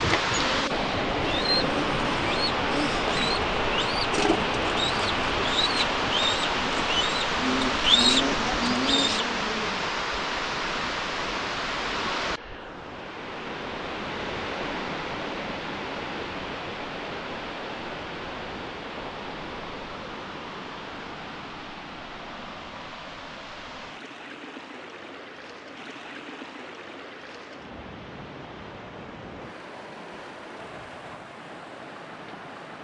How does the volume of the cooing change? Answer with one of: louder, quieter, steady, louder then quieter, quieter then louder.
louder.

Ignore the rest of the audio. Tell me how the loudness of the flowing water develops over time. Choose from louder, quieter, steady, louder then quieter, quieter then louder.
quieter.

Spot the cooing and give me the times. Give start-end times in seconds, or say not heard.
0.0-9.2.